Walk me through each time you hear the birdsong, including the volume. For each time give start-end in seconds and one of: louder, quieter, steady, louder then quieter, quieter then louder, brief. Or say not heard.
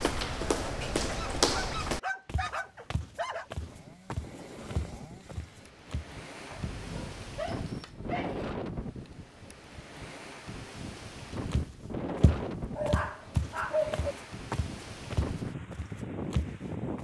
not heard.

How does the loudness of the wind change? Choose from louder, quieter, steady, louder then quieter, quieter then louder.
louder.